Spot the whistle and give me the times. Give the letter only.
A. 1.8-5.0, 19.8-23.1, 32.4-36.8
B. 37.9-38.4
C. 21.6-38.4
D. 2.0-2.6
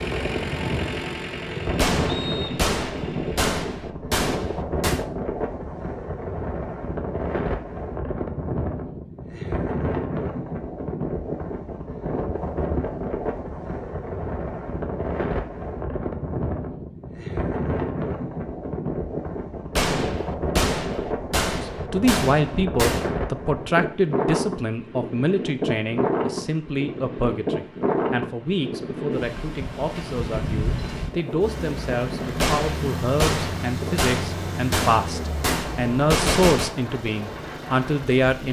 D.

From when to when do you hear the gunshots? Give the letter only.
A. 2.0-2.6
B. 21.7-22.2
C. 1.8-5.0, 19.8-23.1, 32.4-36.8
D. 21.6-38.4
C.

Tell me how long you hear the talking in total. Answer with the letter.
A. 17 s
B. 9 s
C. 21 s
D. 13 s
A.